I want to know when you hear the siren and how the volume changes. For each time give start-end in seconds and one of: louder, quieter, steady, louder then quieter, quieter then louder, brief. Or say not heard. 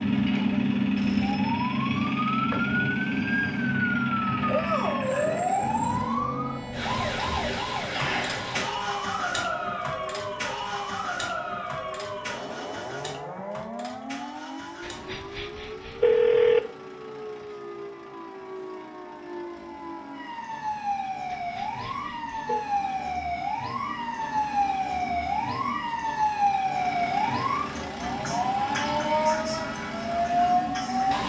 0.0-31.2 quieter then louder.